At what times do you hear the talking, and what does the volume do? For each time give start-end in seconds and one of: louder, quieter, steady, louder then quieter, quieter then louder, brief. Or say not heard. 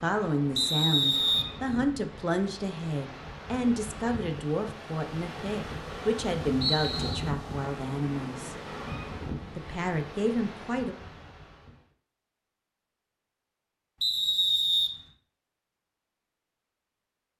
0.0-8.6 steady
9.6-10.9 brief.